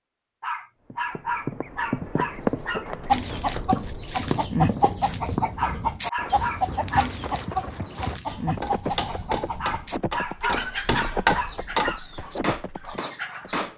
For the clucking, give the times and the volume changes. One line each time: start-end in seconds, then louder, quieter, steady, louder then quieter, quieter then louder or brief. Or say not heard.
3.0-13.7 quieter.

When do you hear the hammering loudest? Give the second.
11 s.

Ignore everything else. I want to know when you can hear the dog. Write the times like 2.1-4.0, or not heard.
0.4-2.9, 5.5-7.2, 9.6-12.0.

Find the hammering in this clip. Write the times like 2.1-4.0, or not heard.
8.2-13.7.